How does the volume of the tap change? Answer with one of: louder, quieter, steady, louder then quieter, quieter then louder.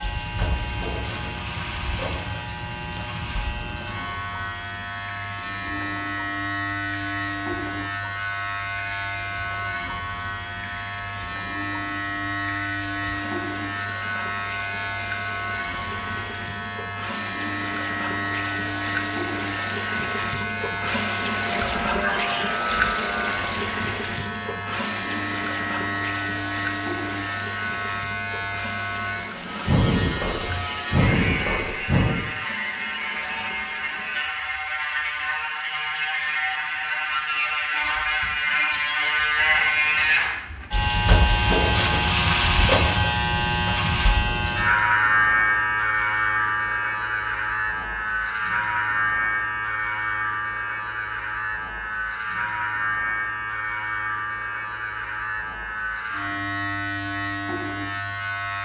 louder then quieter.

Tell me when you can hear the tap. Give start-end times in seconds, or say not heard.
0.1-34.2.